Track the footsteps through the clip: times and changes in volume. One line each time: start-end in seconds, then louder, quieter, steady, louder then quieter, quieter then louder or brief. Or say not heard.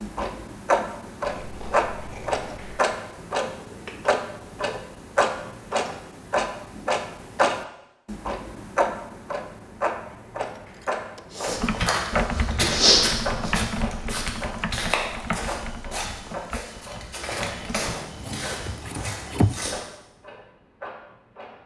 11.5-19.8 quieter.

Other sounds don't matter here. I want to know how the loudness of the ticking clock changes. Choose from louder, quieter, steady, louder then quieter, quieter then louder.
quieter.